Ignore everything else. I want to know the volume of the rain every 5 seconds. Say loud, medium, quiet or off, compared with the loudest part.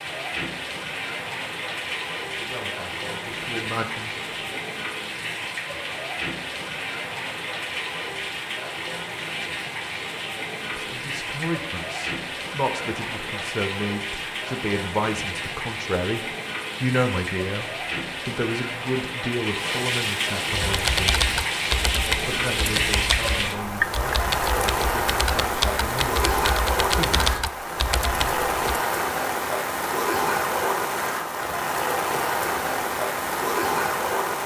medium, medium, medium, medium, loud, loud, loud.